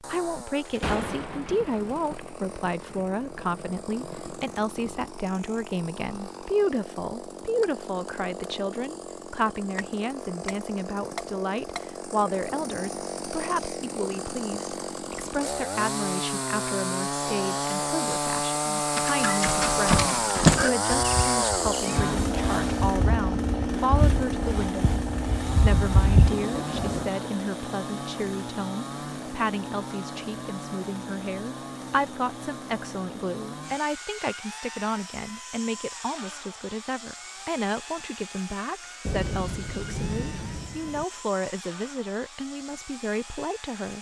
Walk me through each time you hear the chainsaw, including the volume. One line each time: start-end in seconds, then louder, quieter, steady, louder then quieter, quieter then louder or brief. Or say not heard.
0.0-43.9 louder then quieter.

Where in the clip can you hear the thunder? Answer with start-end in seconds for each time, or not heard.
0.7-5.2, 26.1-27.1, 39.0-41.0.